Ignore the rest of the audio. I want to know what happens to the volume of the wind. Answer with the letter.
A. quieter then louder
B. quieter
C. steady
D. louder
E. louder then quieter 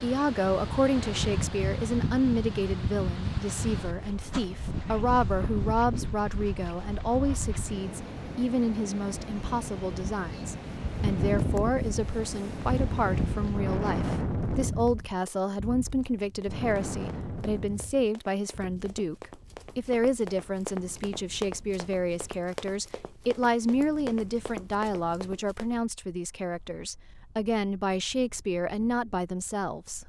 B.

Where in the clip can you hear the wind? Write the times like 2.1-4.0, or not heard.
0.0-30.0.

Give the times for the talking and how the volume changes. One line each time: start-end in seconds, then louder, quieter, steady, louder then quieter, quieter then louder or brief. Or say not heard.
0.0-30.0 steady.